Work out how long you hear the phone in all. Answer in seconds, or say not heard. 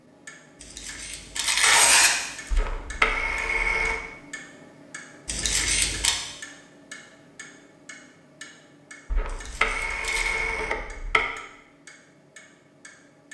4 s.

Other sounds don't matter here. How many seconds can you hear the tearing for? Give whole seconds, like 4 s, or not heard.
4 s.